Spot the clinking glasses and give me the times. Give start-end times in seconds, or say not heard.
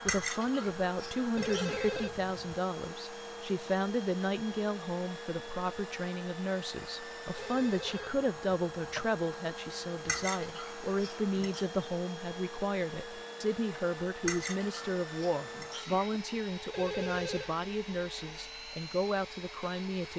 0.1-2.0, 10.1-11.7, 14.2-16.2.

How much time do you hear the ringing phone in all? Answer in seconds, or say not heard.
4 s.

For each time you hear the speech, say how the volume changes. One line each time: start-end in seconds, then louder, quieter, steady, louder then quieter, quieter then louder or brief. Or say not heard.
0.0-20.1 steady.